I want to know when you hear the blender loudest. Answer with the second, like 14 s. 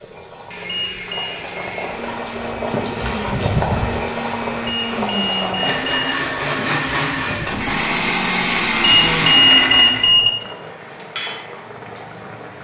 9 s.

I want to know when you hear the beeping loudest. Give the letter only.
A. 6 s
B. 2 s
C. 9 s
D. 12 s
C.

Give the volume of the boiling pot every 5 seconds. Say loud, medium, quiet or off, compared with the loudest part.
loud, loud, medium.